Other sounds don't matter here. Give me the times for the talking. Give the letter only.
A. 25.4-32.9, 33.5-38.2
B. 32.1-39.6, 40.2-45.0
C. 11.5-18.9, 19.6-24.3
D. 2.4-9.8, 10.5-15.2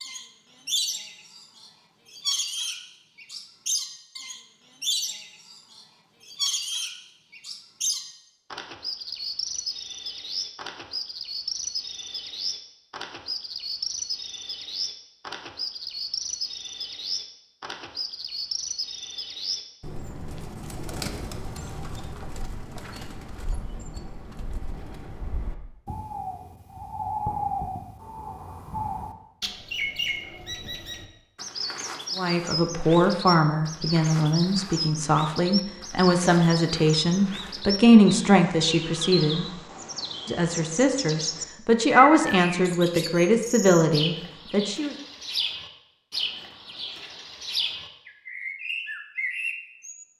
B.